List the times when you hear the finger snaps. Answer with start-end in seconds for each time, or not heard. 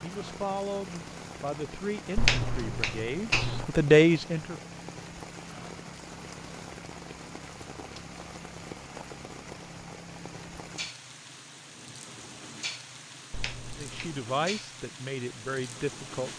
2.1-3.6, 13.3-14.2.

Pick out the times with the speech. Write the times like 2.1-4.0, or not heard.
0.0-4.6, 13.8-16.3.